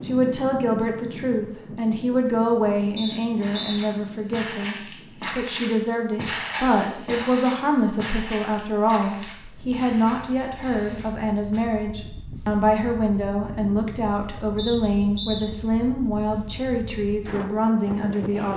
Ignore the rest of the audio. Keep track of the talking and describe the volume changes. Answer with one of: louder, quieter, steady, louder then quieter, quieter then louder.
steady.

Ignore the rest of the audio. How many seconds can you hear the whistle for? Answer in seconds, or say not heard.
2 s.